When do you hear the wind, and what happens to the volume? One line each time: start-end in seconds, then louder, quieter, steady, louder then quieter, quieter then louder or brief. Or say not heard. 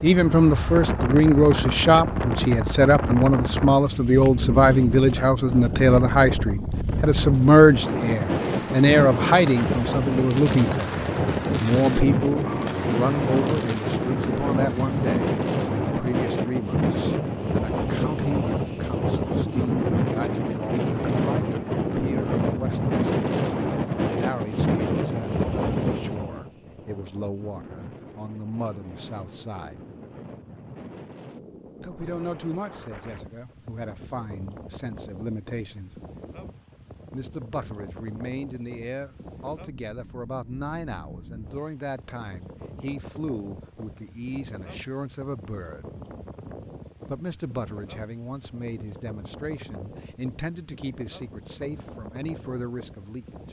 0.0-53.4 quieter.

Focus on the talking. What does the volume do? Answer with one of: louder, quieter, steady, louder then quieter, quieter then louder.
quieter.